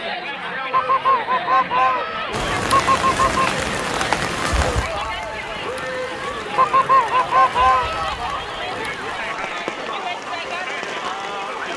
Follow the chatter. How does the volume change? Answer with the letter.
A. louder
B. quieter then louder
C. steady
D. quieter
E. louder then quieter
C.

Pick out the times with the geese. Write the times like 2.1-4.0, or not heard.
0.7-3.6, 6.5-8.4.